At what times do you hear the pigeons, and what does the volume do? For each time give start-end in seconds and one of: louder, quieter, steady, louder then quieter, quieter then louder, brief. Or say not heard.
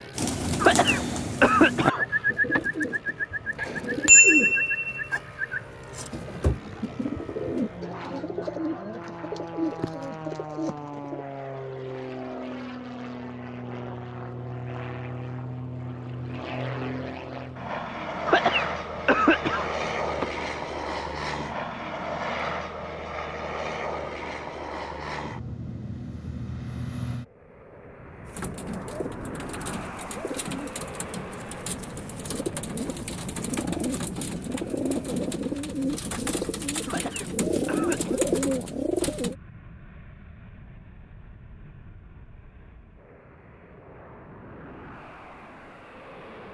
0.1-11.2 quieter
28.2-39.4 louder.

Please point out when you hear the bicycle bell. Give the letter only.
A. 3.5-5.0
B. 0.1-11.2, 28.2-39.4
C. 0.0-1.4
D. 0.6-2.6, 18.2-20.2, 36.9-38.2
A.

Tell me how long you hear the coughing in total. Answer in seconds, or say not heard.
5 s.